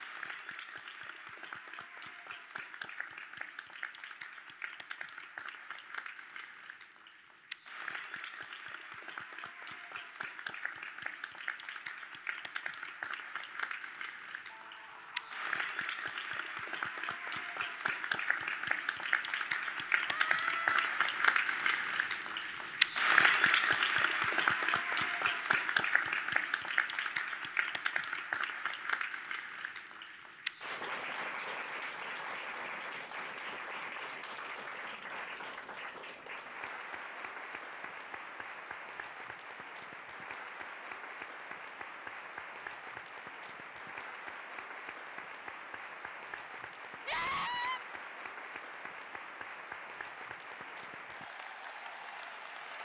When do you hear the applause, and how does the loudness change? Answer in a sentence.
You can hear the applause from 0.0 to 52.7 s, getting louder then quieter.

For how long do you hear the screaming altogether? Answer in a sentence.
The screaming can be heard for 3 seconds in total.